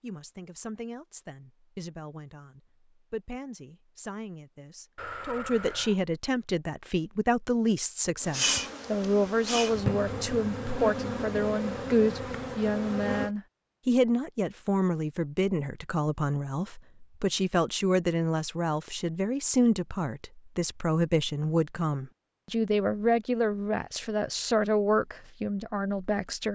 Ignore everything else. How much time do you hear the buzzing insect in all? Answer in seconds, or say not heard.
5 s.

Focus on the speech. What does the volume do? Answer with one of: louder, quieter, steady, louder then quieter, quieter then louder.
louder.